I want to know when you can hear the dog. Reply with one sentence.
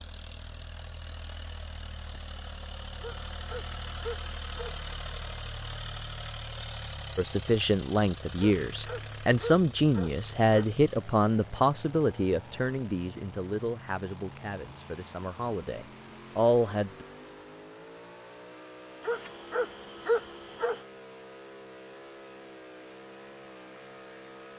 You can hear the dog from 3.0 to 4.8 s, from 8.3 to 10.8 s and from 19.0 to 20.8 s.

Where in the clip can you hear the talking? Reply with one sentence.
The talking can be heard from 7.2 to 17.1 s.